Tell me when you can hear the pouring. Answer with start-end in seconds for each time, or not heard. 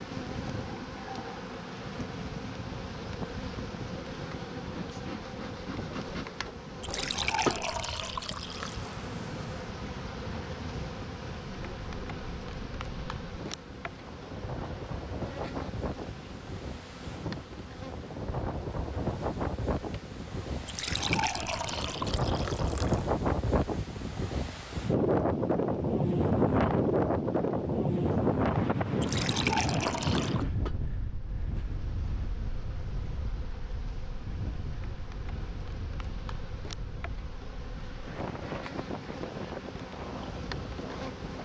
6.8-8.9, 20.6-23.1, 29.0-30.4.